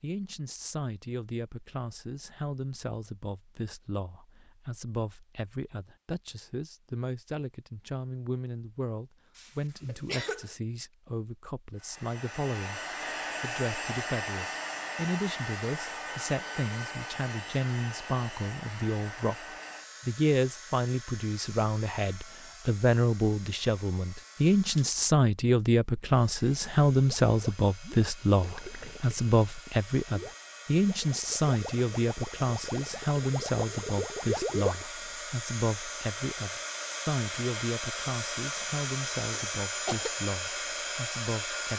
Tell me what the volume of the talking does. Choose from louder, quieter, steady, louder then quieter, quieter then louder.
louder then quieter.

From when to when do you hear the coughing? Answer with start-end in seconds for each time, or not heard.
9.3-10.6, 39.2-40.1.